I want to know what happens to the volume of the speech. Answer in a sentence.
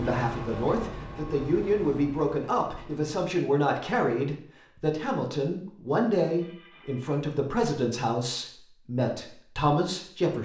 The volume of the speech stays about the same.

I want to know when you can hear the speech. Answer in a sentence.
You can hear the speech from 0.0 to 10.4 s.